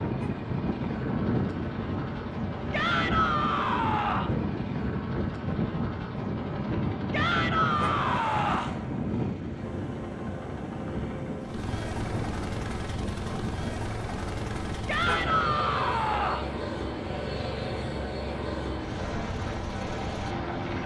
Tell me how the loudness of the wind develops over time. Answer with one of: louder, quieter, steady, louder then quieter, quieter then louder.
quieter.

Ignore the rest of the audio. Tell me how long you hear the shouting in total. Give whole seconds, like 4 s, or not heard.
5 s.